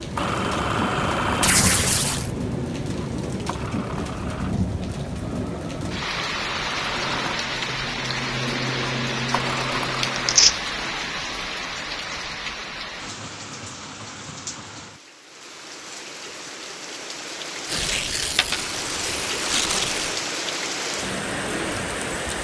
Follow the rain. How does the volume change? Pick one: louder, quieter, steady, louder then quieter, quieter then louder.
quieter then louder.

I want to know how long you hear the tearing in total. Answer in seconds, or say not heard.
4 s.